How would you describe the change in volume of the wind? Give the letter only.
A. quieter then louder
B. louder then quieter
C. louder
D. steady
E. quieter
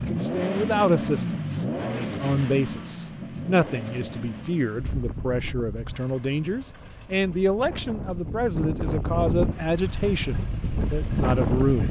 A.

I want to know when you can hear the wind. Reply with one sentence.
The wind can be heard from 4.8 to 11.8 s.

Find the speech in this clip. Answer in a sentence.
The speech can be heard from 0.1 to 11.8 s.